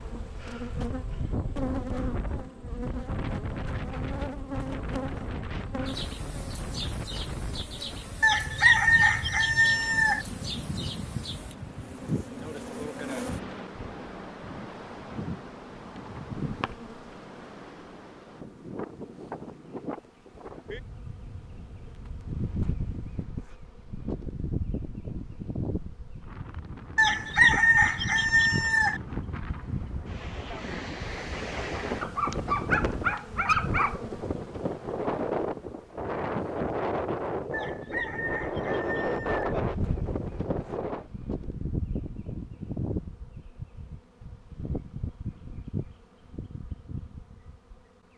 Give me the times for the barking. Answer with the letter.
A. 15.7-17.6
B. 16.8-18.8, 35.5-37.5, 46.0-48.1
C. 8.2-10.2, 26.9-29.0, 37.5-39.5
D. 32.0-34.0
D.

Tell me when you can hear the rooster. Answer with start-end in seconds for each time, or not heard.
8.2-10.2, 26.9-29.0, 37.5-39.5.